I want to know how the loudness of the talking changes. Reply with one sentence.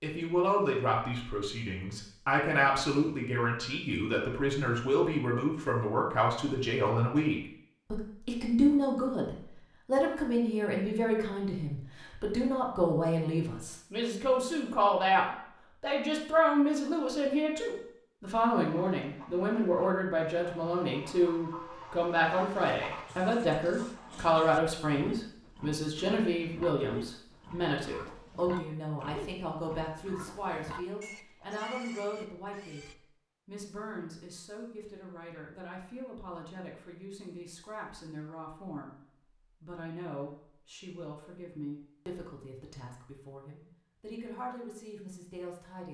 The volume of the talking goes down.